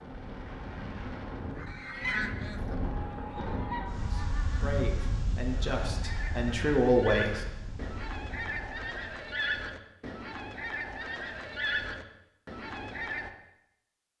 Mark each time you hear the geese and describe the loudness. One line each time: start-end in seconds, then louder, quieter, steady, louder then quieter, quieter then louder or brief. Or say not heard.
1.6-13.3 quieter then louder.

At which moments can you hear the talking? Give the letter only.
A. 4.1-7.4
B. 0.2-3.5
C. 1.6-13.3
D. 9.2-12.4
A.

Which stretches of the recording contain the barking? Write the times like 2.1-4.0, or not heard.
not heard.